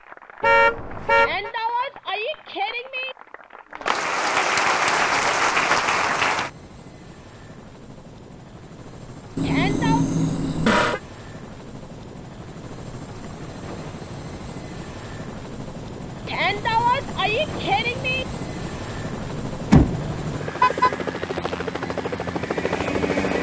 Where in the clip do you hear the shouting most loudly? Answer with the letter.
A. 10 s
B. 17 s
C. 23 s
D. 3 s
B.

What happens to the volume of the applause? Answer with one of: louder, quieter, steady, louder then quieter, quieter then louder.
louder.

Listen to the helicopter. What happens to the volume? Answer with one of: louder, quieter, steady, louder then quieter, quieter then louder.
louder.